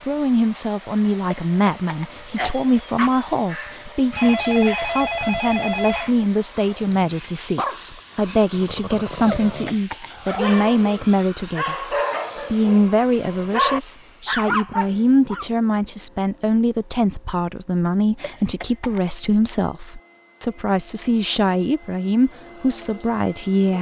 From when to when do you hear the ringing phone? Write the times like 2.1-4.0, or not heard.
4.2-6.1.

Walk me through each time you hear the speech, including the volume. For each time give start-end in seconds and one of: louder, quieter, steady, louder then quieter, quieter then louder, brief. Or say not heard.
0.1-23.7 steady.